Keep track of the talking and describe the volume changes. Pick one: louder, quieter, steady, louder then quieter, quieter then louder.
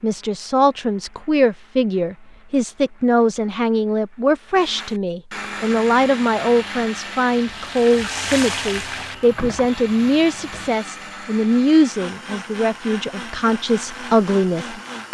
steady.